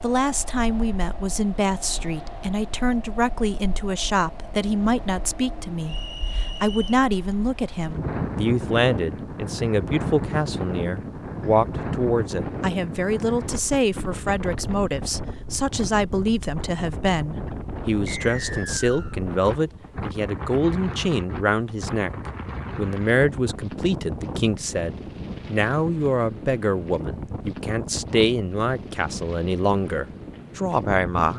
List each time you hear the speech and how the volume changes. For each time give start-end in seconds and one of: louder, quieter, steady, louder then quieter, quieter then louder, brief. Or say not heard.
0.0-31.3 steady.